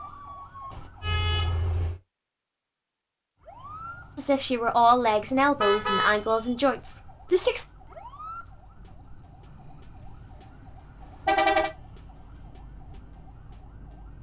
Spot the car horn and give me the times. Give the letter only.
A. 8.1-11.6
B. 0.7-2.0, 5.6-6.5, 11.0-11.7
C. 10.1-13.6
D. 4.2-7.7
B.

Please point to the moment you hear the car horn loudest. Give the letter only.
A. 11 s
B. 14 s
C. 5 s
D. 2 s
A.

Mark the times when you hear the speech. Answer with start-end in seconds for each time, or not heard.
4.2-7.7.